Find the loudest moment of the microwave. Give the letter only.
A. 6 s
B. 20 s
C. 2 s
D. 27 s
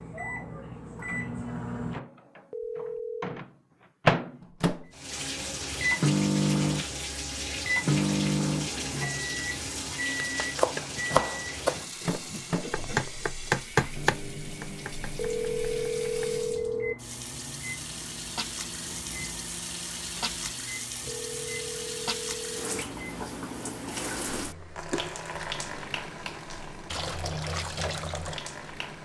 A.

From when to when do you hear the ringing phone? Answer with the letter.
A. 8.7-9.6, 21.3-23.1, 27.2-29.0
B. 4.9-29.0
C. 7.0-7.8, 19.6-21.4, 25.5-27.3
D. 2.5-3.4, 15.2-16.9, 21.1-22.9
D.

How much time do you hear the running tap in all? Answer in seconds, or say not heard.
24 s.